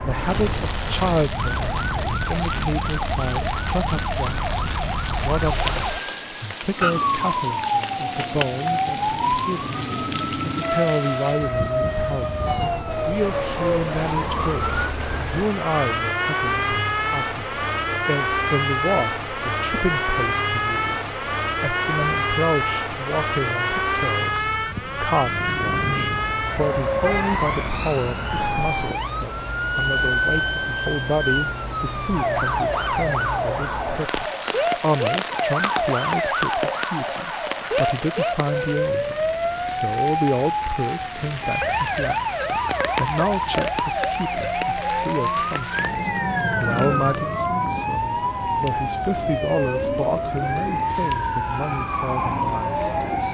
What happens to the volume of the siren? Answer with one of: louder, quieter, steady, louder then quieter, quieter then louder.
steady.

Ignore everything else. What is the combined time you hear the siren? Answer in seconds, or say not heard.
53 s.